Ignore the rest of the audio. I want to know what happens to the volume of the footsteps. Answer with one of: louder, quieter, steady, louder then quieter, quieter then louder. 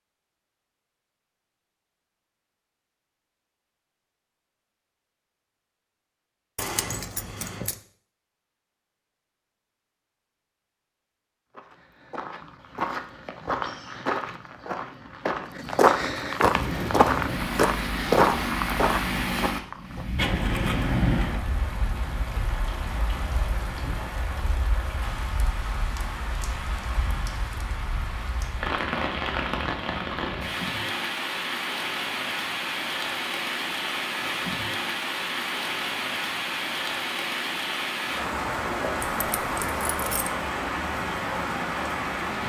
louder.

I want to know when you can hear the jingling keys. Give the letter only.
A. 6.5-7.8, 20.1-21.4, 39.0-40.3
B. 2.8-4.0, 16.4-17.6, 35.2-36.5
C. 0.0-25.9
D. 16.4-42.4
A.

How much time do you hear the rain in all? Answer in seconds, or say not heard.
26 s.